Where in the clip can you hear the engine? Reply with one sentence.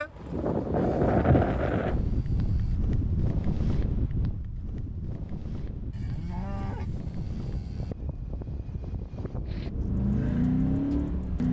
You can hear the engine from 9.5 to 11.4 s.